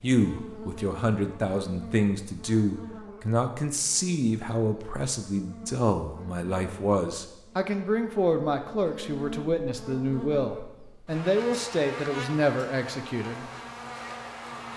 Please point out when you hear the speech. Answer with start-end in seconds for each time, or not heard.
0.0-13.4.